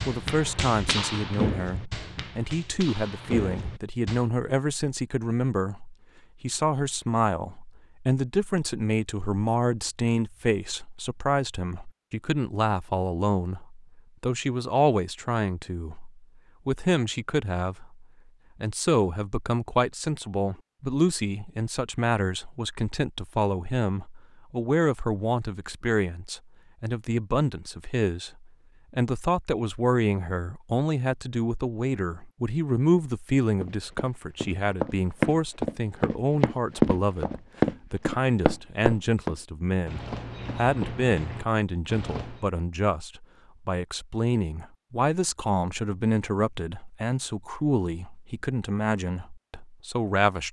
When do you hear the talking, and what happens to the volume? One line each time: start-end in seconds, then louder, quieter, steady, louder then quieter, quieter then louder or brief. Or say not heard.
0.1-50.4 steady.